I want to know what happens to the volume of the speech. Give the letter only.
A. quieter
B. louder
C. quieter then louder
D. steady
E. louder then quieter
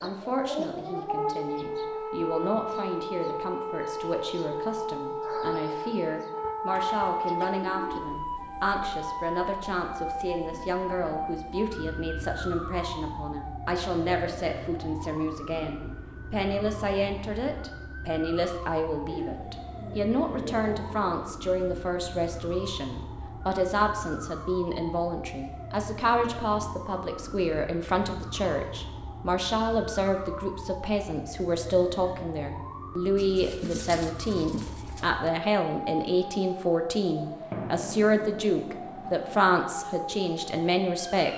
B.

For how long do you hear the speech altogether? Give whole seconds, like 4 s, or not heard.
41 s.